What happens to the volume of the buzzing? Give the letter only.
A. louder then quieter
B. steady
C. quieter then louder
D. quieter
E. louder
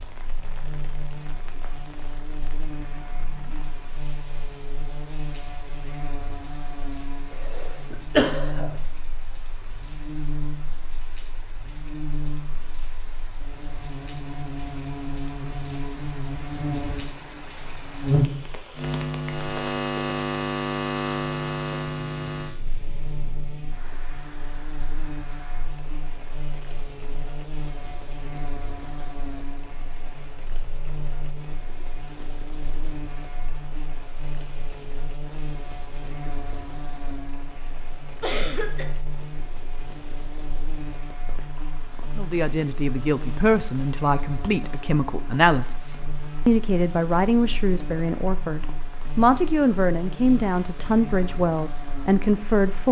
A.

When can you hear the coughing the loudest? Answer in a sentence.
The volume of the coughing peaks at 8 seconds.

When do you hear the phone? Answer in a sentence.
The phone can't be heard in this clip.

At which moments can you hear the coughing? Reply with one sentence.
The coughing can be heard from 7.5 to 8.7 s and from 38.2 to 38.9 s.